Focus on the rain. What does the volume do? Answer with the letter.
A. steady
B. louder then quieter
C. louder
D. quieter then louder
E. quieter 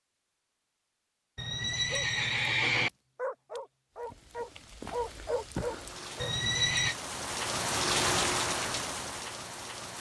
B.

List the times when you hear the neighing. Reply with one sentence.
You can hear the neighing from 1.4 to 2.9 s and from 6.2 to 7.0 s.